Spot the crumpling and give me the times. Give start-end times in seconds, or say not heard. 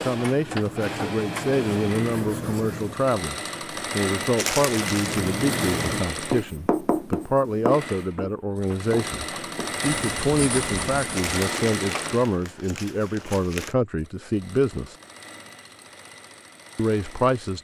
4.3-5.2, 11.2-13.8.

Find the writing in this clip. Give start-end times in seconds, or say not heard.
0.2-3.1, 4.8-11.3.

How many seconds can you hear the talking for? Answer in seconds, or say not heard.
16 s.